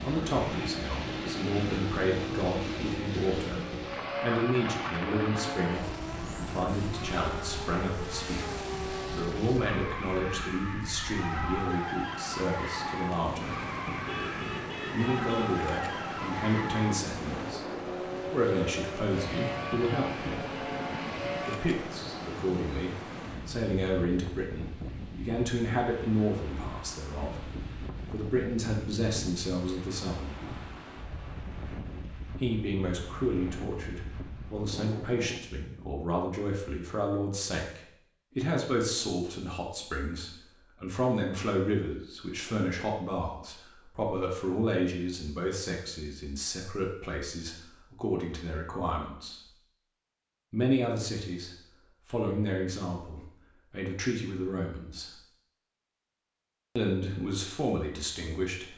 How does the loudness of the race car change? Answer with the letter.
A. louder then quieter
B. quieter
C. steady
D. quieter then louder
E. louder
C.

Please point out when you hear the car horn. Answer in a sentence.
You can hear the car horn from 14.1 to 15.6 s.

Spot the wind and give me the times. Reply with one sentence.
You can hear the wind from 0.0 to 35.4 s.